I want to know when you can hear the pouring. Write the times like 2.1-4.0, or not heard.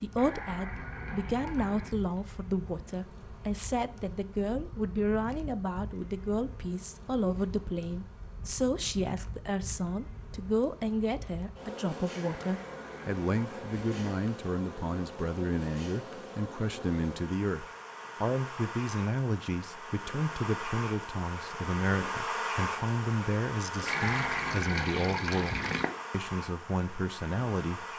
0.1-1.9, 12.1-14.1, 23.9-25.9.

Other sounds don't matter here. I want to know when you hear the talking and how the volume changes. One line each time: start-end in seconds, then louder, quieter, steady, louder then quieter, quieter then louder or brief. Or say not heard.
0.0-27.9 steady.